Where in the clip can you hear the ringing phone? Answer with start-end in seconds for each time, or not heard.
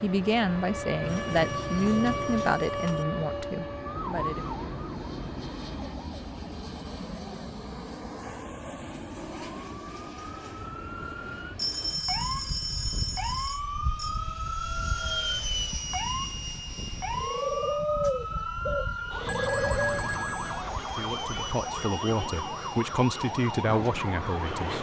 1.1-3.0, 11.6-14.2, 19.2-20.6.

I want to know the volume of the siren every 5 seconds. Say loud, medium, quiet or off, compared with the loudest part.
loud, medium, loud, loud, loud.